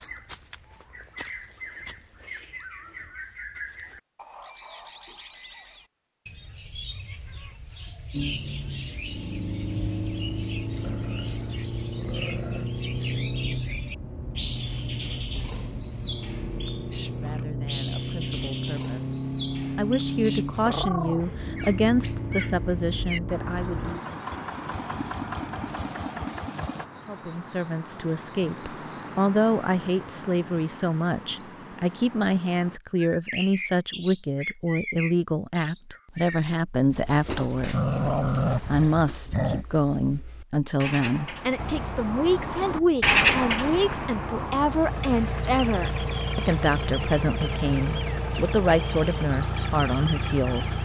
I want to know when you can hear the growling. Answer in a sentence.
The growling can be heard from 10.8 to 12.7 s, from 20.6 to 21.2 s and from 37.7 to 39.6 s.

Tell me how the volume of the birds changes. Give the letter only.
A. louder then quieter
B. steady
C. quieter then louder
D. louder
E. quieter
D.